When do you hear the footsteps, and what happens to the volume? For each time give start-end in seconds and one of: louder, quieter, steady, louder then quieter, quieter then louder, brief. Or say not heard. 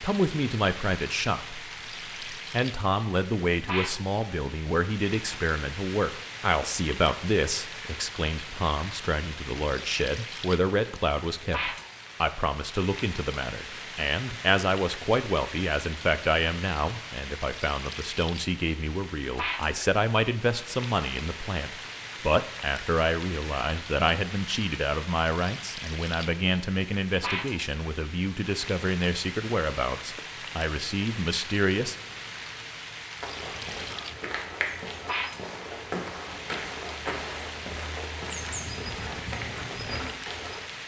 33.2-40.6 steady.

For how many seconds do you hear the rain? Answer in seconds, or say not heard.
41 s.